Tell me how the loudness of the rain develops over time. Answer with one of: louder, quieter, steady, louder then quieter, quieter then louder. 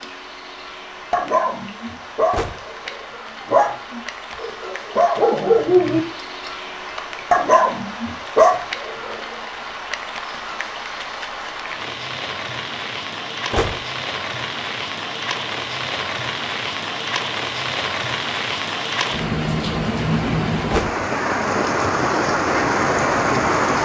louder.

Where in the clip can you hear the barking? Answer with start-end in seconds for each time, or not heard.
1.1-6.5, 7.3-9.3.